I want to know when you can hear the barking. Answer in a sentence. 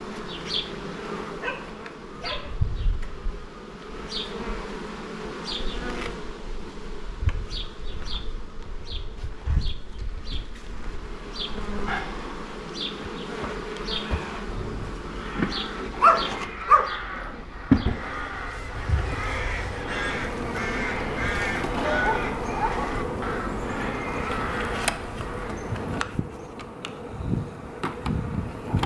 The barking can be heard from 1.4 to 2.5 s, from 16.0 to 17.4 s and from 21.9 to 22.9 s.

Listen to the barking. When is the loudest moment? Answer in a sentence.
The loudest moment of the barking is at 16 seconds.